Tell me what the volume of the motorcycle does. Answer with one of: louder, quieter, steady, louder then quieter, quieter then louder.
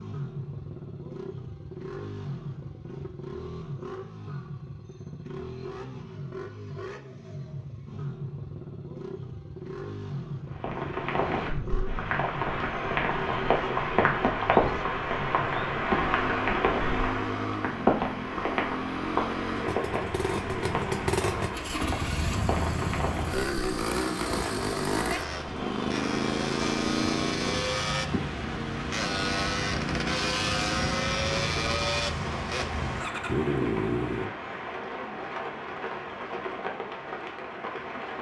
louder.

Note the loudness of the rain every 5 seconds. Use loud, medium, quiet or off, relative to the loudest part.
off, off, loud, loud, medium, medium, medium, medium.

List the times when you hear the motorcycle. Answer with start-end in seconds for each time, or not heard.
0.0-34.3.